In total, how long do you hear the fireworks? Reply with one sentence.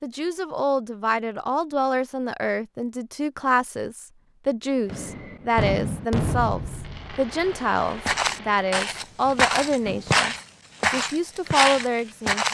You can hear the fireworks for 5 seconds altogether.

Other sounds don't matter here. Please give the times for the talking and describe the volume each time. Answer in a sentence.
You can hear the talking from 0.0 to 12.4 s, at a steady volume.